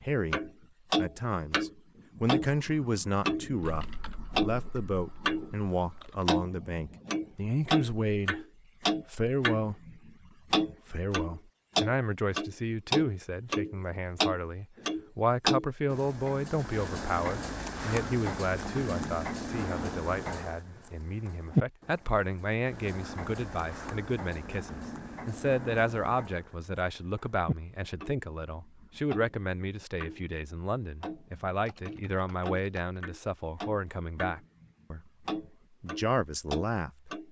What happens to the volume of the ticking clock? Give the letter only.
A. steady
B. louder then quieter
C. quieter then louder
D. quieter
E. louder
D.